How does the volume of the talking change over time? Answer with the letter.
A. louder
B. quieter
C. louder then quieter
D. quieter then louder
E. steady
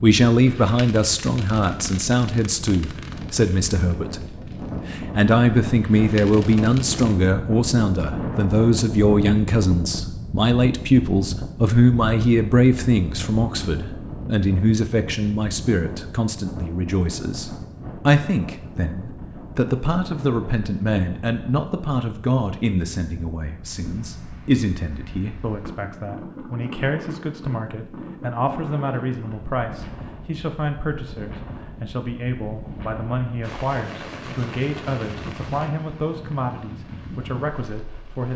B.